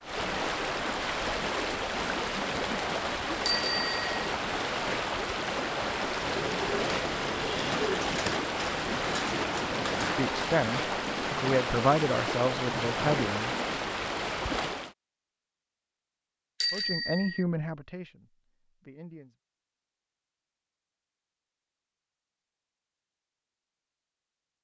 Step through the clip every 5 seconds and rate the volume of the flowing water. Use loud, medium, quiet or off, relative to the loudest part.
loud, loud, loud, off, off.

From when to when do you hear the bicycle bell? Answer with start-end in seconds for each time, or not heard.
3.5-4.2, 16.6-17.4.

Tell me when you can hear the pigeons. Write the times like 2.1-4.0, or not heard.
6.2-10.2.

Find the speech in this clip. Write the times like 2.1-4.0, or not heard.
10.0-13.6, 16.7-19.4.